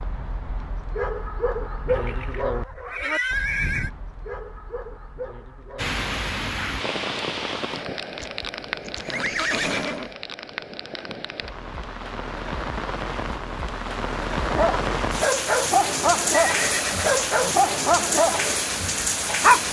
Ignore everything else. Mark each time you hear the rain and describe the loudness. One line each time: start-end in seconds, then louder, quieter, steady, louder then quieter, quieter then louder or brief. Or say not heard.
5.8-19.6 quieter then louder.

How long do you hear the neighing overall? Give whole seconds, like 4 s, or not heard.
5 s.